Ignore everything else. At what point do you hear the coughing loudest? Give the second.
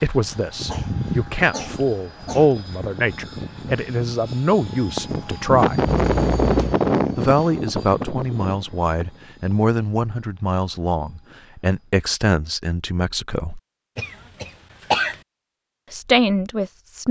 15 s.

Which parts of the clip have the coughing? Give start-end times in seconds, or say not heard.
0.6-2.5, 5.8-6.8, 13.9-15.2.